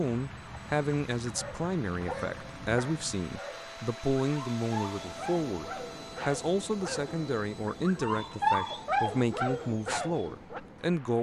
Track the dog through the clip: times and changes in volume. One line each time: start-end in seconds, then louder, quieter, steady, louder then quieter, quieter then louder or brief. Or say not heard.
1.2-10.6 louder.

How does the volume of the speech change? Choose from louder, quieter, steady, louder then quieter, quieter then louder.
steady.